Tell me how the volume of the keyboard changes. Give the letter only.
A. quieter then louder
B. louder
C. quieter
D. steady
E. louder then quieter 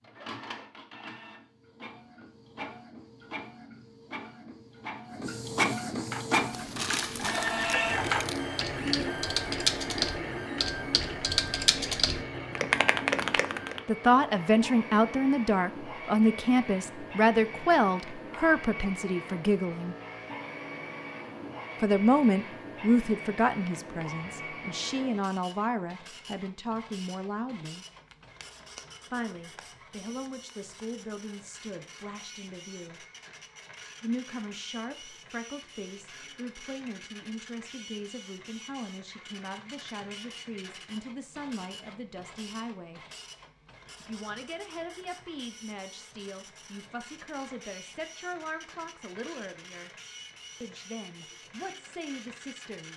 B.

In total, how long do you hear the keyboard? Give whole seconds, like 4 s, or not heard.
8 s.